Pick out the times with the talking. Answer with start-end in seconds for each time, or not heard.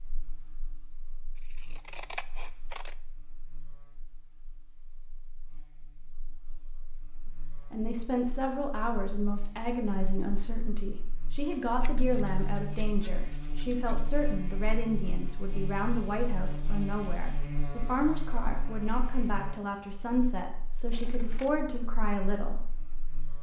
7.7-22.6.